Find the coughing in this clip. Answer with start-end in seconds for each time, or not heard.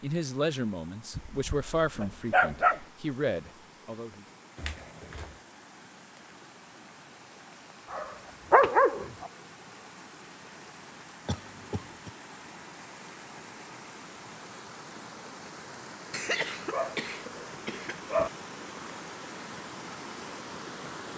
4.5-5.4, 11.2-12.1, 16.1-18.1.